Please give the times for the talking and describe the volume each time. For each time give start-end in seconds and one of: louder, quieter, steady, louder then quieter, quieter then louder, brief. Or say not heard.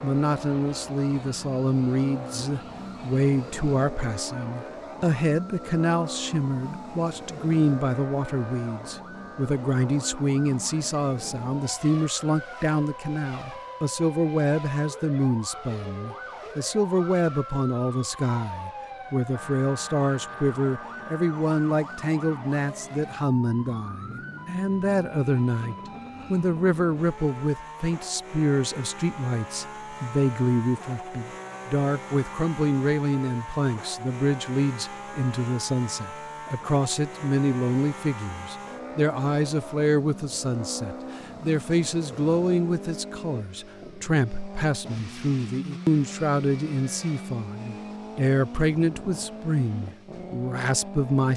0.0-51.3 steady.